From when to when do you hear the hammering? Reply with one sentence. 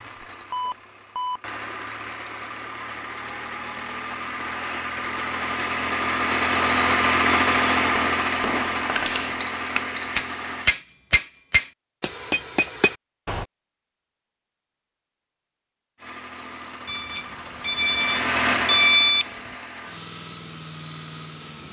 You can hear the hammering from 8.0 to 13.4 s.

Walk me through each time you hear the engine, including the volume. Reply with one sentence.
The engine can be heard from 0.0 to 10.7 s, getting louder then quieter; and from 15.9 to 21.6 s, getting louder then quieter.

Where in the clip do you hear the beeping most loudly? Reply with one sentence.
The loudest moment of the beeping is at 19 seconds.